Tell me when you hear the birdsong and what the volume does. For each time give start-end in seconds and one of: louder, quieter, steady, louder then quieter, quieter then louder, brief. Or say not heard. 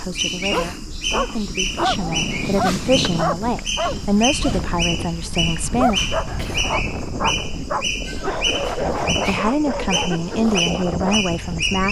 0.0-11.8 steady.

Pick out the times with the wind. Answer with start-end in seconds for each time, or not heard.
1.6-11.8.